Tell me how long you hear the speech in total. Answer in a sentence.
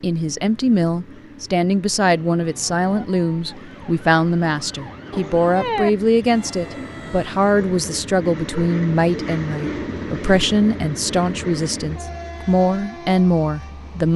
The speech can be heard for 14 seconds in total.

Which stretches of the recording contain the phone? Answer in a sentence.
The phone can't be heard in this clip.